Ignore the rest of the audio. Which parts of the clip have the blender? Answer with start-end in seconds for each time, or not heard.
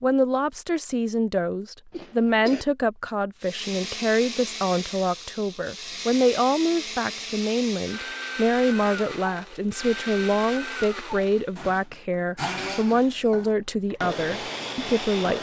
3.4-15.3.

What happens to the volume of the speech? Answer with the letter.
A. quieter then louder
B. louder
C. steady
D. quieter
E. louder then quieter
C.